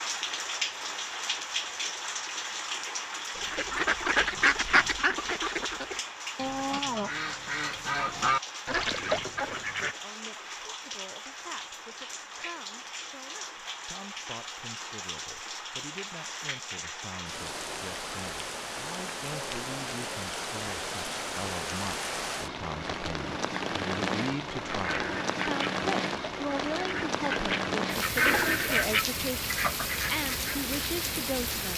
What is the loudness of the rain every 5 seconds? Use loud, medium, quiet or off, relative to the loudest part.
loud, medium, medium, medium, loud, loud, loud.